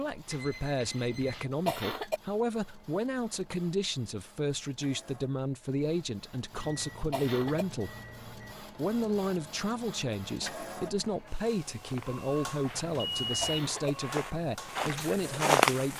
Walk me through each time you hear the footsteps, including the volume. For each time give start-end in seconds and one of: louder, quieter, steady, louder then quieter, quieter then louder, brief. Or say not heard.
11.8-15.9 louder.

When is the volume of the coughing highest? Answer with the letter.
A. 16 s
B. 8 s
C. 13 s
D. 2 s
D.